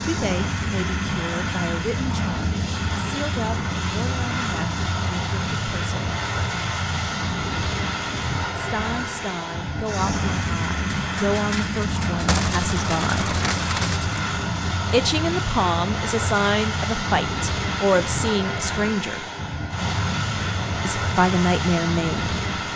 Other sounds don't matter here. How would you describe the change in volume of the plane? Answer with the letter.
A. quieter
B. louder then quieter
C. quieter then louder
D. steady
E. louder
D.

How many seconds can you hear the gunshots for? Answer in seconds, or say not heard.
3 s.